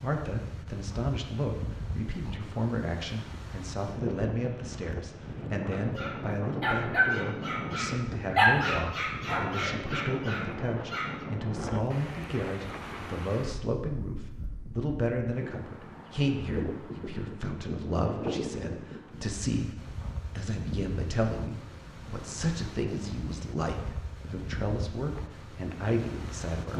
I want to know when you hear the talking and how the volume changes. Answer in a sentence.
You can hear the talking from 0.0 to 26.7 s, at a steady volume.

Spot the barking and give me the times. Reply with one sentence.
You can hear the barking from 5.7 to 11.2 s.